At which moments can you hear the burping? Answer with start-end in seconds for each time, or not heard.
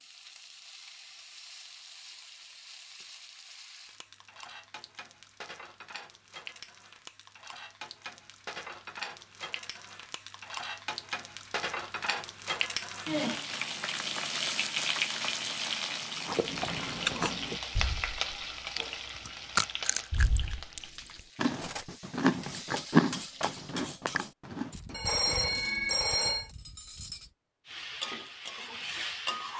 not heard.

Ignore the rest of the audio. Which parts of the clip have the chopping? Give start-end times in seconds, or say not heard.
not heard.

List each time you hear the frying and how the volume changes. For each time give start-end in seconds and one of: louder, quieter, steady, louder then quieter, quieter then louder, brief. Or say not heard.
0.0-23.8 louder then quieter
27.6-29.5 brief.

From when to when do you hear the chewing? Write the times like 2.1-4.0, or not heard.
16.1-25.6.